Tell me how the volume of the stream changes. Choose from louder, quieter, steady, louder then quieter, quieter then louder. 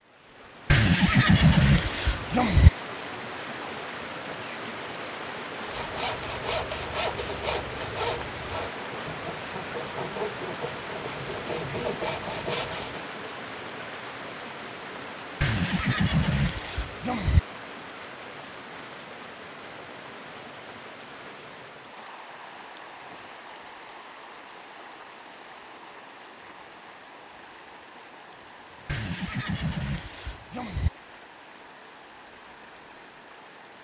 quieter.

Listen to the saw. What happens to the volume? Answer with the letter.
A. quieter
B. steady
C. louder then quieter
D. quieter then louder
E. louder
D.